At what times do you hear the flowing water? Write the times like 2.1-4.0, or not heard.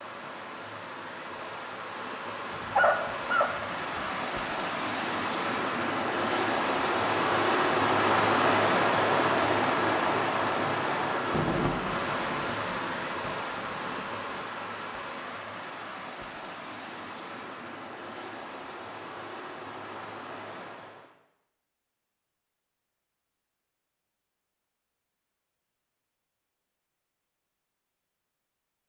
0.0-21.1.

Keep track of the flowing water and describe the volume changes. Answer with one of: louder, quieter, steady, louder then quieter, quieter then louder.
louder then quieter.